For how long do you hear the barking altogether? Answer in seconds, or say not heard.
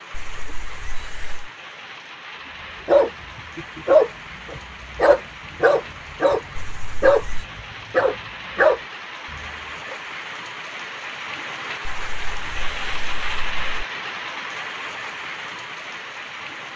7 s.